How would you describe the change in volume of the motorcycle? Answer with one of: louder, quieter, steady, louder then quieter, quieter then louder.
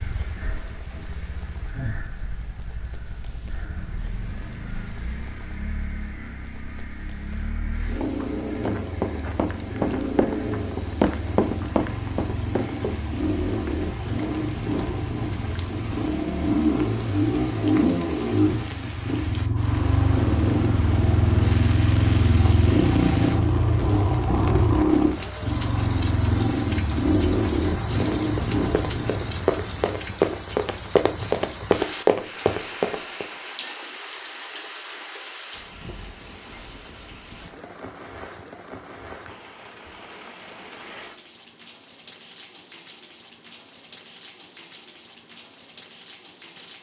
louder.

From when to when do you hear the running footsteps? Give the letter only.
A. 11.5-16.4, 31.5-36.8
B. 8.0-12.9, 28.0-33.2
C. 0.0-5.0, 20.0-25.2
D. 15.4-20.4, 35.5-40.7
B.